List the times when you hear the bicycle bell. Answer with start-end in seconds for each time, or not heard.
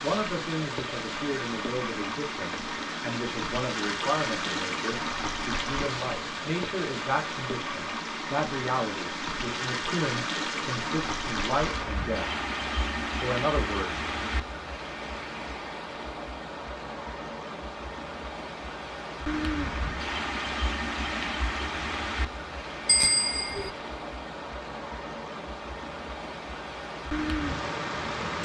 22.9-23.7.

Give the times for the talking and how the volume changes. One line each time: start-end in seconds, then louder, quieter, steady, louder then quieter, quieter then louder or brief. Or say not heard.
0.0-12.2 steady
13.2-14.4 brief.